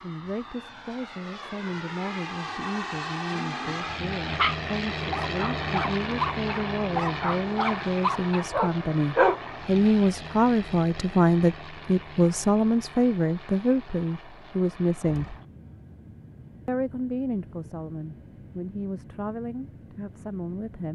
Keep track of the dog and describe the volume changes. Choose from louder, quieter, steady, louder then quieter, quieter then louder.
louder.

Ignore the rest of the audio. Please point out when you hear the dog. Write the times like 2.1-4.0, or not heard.
4.2-9.8.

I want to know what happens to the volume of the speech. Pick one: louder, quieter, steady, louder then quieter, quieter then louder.
louder then quieter.